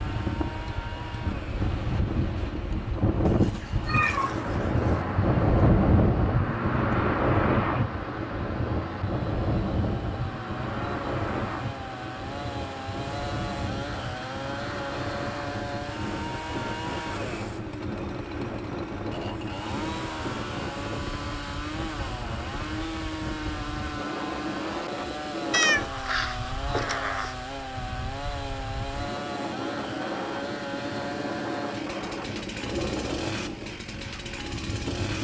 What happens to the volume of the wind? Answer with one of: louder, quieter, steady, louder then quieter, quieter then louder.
quieter.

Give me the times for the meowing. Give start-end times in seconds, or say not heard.
3.2-5.0, 25.5-27.4.